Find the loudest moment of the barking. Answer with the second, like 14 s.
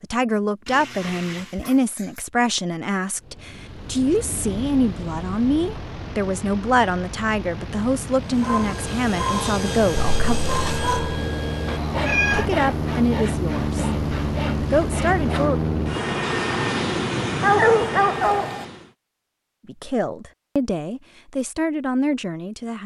18 s.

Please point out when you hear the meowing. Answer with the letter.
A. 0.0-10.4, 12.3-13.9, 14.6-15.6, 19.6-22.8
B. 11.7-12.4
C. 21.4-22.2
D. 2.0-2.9
B.